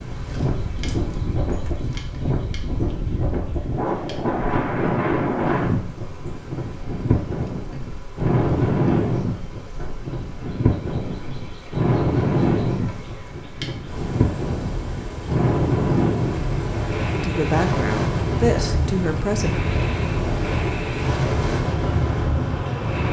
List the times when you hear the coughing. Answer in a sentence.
You can't hear the coughing here.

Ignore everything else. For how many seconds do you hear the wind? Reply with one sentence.
You can hear the wind for 23 seconds altogether.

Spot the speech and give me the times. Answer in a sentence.
You can hear the speech from 17.1 to 19.6 s.